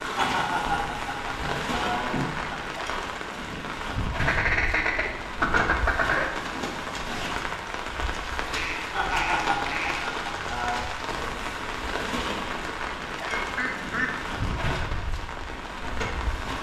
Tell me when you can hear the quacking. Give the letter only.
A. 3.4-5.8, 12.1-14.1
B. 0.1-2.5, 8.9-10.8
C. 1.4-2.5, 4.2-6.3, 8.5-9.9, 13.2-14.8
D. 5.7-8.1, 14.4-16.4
C.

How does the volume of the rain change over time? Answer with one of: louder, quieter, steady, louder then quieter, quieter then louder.
steady.